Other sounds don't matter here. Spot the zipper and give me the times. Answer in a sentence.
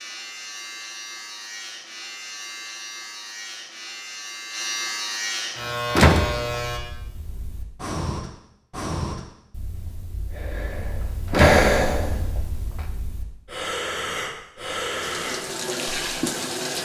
You can't hear the zipper here.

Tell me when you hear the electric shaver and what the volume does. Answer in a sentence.
You can hear the electric shaver from 0.0 to 6.8 s, getting louder.